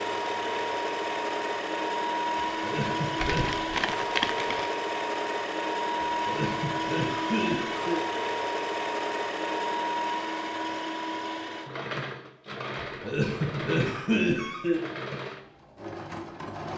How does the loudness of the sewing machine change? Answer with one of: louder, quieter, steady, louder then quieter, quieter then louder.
quieter.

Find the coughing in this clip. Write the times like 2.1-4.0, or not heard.
2.4-3.6, 6.0-8.0, 13.0-14.8.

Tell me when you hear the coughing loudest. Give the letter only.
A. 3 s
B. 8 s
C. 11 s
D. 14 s
D.